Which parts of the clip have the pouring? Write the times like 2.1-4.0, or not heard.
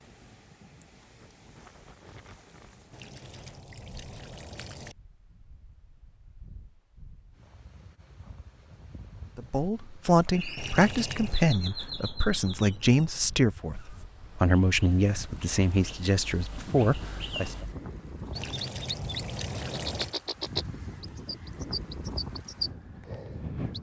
2.9-5.0, 10.6-11.4, 18.3-20.1.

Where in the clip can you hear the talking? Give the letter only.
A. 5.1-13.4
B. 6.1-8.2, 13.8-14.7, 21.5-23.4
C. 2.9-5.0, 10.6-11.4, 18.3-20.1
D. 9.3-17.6
D.